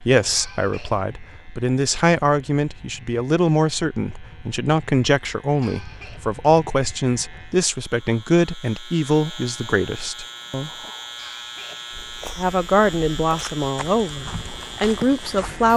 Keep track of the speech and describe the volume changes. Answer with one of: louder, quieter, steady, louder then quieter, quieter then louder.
steady.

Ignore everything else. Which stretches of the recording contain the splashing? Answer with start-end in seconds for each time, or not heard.
not heard.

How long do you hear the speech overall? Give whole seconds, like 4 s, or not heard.
14 s.